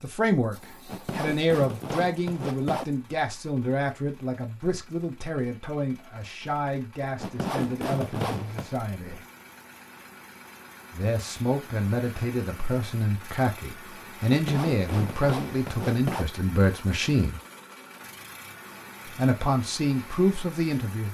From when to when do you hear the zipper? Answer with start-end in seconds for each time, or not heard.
0.8-2.9, 7.2-8.7, 14.2-16.2.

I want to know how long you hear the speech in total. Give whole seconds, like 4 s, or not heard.
18 s.